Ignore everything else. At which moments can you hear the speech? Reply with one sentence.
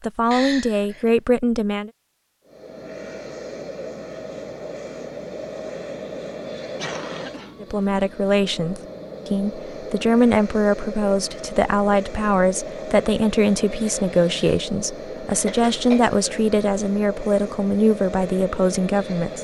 You can hear the speech from 0.0 to 1.9 s and from 7.6 to 19.3 s.